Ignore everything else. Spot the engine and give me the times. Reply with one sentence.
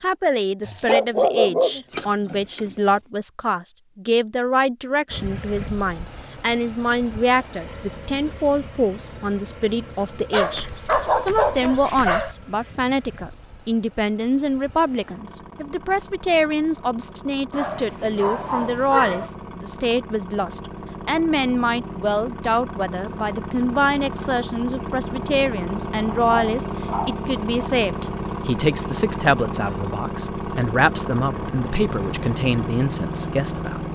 You can hear the engine from 5.0 to 33.8 s.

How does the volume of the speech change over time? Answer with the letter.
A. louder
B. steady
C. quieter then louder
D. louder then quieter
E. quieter
B.